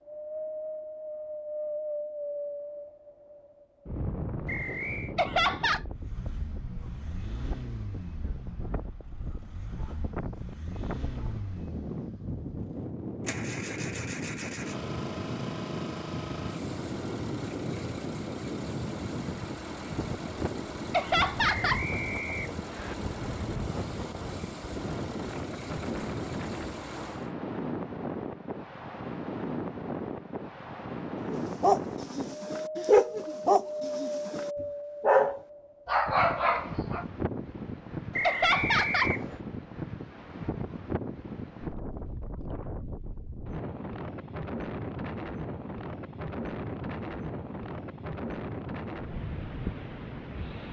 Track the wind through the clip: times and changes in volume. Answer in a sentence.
You can hear the wind from 0.0 to 50.6 s, at a steady volume.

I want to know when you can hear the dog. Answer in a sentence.
You can hear the dog from 31.3 to 37.0 s.